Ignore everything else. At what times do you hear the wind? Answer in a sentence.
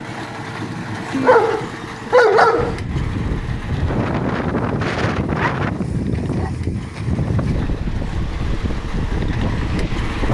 You can hear the wind from 2.5 to 10.2 s.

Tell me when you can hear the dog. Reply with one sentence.
The dog can be heard from 1.1 to 2.8 s and from 5.4 to 6.5 s.